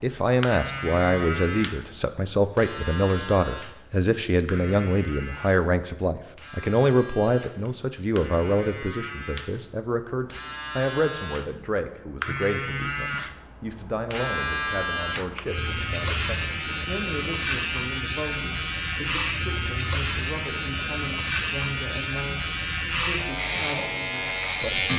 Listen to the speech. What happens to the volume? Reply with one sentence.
The loudness of the speech goes down.